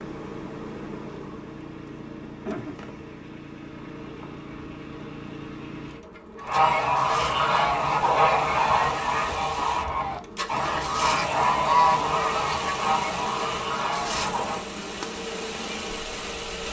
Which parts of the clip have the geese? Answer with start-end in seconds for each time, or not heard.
6.4-14.7.